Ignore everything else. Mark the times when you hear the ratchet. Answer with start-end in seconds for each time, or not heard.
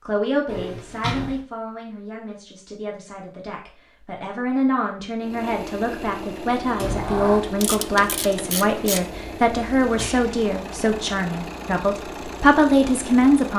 7.6-9.1.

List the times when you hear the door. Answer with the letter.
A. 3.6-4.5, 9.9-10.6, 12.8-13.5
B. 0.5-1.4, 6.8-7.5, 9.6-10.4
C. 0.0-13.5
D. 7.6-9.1
B.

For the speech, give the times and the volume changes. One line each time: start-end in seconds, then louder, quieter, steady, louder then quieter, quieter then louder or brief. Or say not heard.
0.0-13.5 louder.